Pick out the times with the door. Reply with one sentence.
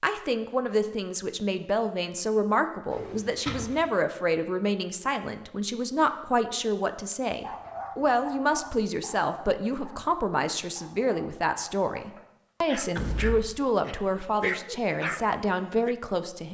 You can hear the door from 2.9 to 3.9 s and from 12.9 to 13.6 s.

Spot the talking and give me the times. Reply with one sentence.
The talking can be heard from 0.0 to 16.4 s.